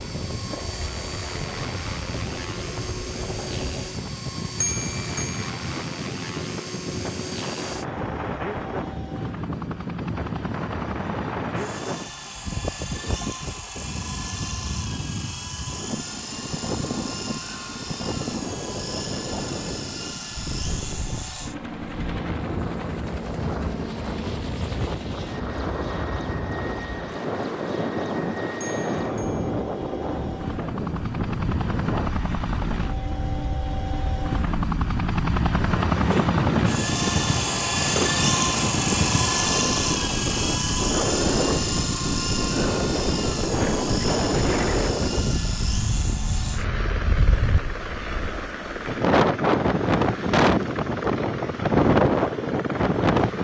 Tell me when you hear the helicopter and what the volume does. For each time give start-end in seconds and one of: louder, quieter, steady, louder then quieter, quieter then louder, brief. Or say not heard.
0.0-53.3 louder then quieter.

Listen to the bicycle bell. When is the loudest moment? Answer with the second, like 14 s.
5 s.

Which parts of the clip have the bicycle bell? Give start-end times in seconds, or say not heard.
4.6-5.5, 28.6-29.5.